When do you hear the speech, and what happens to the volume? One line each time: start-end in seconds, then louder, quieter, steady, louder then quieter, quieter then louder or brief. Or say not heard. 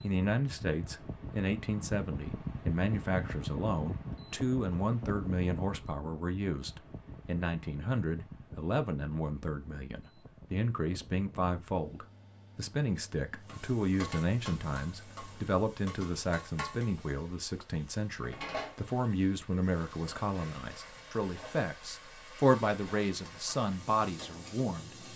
0.0-25.1 steady.